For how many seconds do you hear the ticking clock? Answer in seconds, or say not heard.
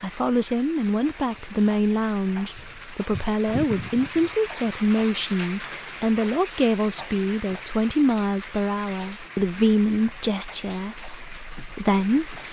not heard.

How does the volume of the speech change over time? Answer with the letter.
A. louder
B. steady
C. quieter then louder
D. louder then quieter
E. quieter
B.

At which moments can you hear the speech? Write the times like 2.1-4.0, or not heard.
0.0-12.4.